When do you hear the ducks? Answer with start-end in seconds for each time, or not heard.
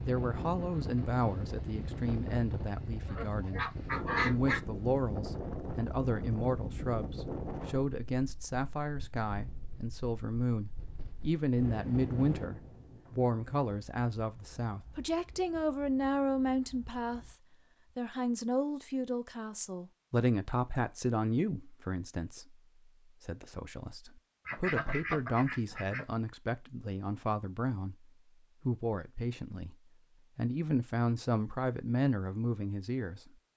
3.0-4.6, 24.4-26.1.